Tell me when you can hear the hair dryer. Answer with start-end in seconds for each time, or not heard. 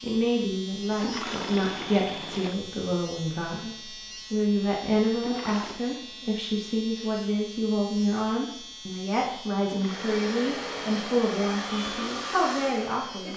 9.8-13.3.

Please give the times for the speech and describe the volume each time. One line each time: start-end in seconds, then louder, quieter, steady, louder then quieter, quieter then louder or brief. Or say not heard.
0.0-13.3 steady.